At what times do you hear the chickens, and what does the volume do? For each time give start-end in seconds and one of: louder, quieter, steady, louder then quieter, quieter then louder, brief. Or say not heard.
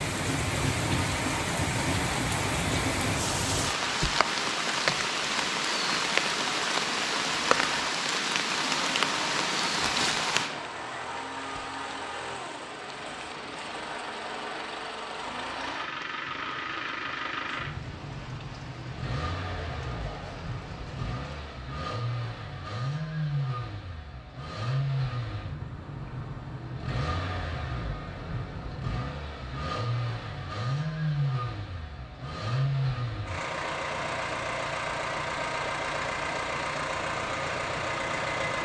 not heard.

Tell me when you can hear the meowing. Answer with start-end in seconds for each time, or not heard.
not heard.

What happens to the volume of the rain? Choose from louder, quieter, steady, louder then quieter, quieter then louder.
quieter.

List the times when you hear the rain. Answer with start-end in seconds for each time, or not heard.
0.0-21.6.